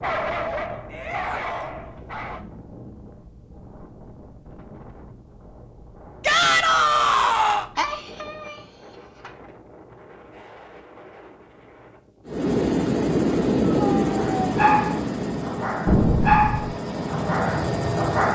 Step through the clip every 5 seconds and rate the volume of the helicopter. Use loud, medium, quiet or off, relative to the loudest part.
off, off, loud, medium.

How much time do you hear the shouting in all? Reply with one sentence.
The shouting can be heard for 3 seconds in total.